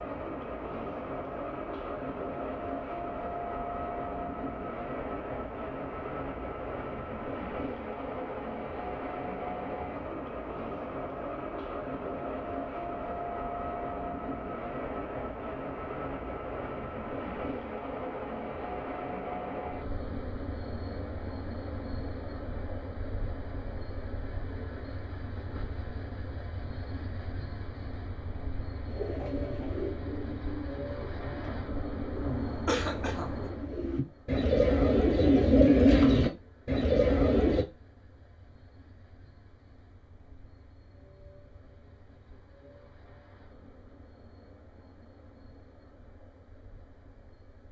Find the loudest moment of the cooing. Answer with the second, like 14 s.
36 s.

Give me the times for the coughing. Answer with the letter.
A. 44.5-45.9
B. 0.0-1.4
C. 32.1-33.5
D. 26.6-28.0
C.